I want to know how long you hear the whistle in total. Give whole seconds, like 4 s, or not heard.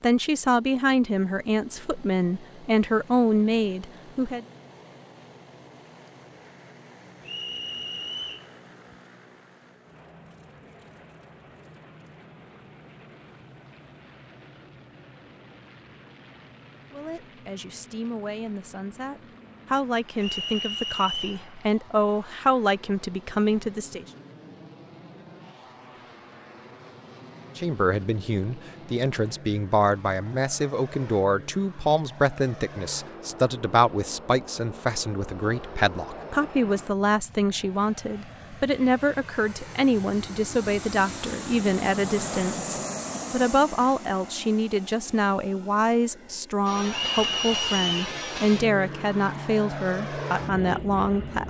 4 s.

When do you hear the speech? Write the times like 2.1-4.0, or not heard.
0.0-4.5, 16.9-24.1, 27.6-51.4.